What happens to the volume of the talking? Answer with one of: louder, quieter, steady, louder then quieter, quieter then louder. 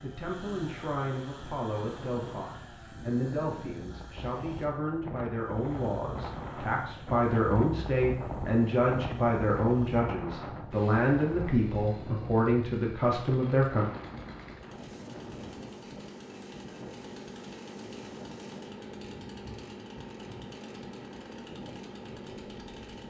louder.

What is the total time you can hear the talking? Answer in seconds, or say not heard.
14 s.